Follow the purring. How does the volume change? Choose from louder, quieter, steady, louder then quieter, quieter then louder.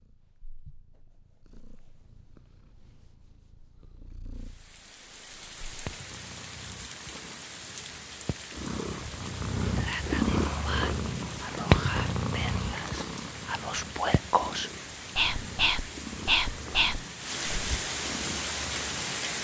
louder then quieter.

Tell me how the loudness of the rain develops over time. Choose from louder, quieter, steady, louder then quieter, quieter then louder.
louder.